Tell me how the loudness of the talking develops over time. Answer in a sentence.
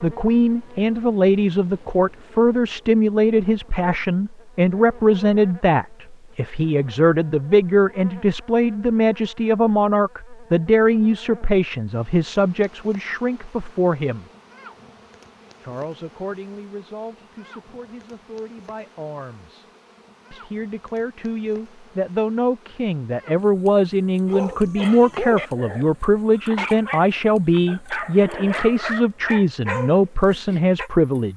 The volume of the talking goes down, then up.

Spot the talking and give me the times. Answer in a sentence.
You can hear the talking from 0.0 to 14.2 s, from 15.6 to 19.6 s and from 20.3 to 31.3 s.